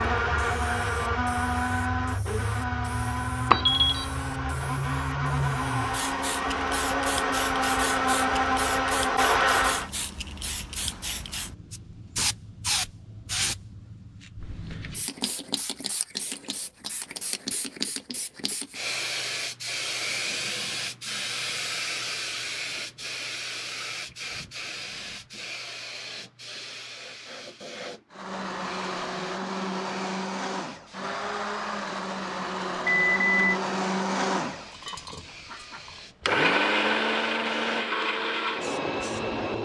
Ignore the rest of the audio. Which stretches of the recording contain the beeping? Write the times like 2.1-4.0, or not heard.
3.5-4.0, 32.9-33.6.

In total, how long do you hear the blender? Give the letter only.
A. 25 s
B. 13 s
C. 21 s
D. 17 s
C.